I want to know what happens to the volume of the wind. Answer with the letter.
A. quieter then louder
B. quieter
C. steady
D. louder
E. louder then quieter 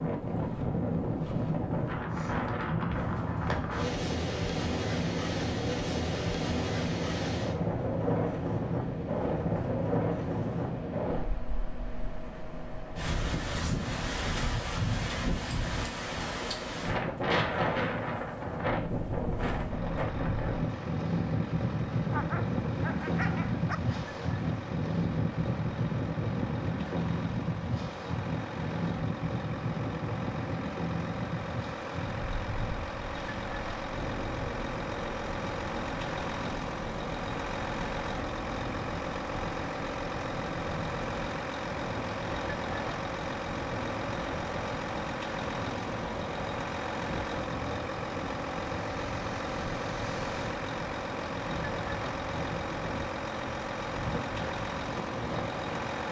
B.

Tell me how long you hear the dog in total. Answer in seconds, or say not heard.
2 s.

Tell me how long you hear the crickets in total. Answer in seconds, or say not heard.
not heard.